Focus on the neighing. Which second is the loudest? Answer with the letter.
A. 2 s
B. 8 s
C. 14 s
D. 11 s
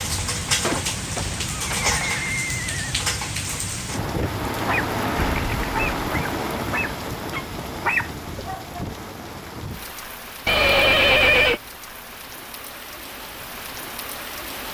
D.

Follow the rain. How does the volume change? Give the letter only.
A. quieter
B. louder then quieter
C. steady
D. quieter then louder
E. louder
A.